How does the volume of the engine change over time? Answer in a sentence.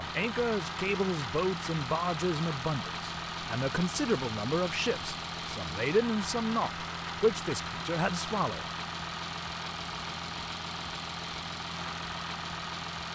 The volume of the engine stays about the same.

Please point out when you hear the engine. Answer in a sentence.
You can hear the engine from 0.0 to 13.1 s.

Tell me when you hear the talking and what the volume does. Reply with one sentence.
You can hear the talking from 0.0 to 8.7 s, at a steady volume.